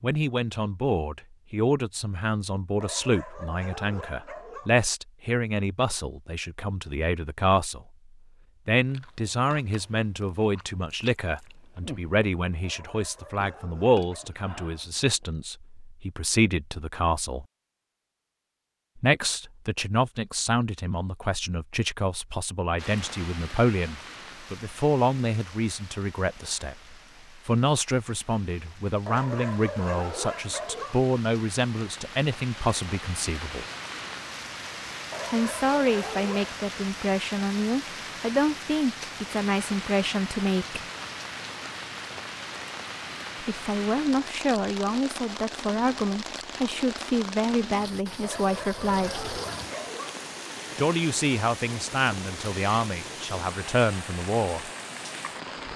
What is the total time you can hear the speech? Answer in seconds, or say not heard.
47 s.